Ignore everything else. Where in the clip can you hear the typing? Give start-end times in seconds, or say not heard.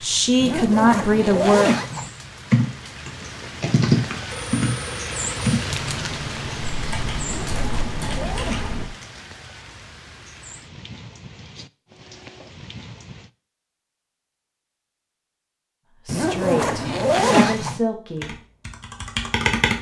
2.5-8.9, 18.1-19.7.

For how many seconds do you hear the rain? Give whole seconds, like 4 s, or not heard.
13 s.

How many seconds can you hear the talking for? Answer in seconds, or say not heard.
4 s.